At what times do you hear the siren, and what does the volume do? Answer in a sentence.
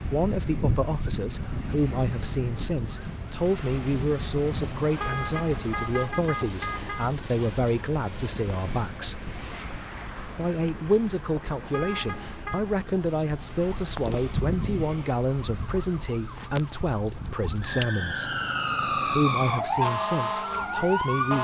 The siren can be heard from 0.0 to 21.4 s, getting quieter then louder.